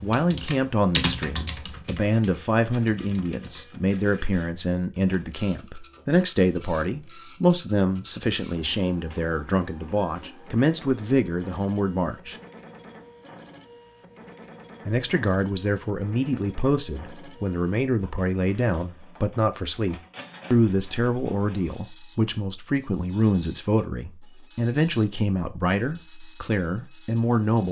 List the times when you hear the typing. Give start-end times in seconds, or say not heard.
0.0-3.9.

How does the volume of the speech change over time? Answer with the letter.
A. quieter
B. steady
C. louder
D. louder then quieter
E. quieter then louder
B.